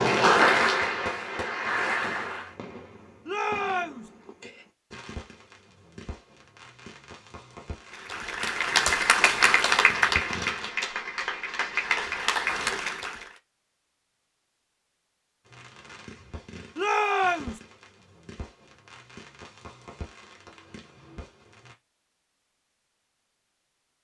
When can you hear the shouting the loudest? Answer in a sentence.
The loudest moment of the shouting is at 17 seconds.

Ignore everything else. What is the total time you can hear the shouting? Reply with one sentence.
You can hear the shouting for 2 seconds altogether.